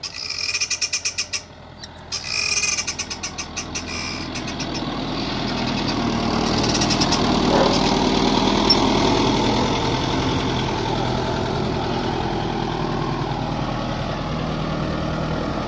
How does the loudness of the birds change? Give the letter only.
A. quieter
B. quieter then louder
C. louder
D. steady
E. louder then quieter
B.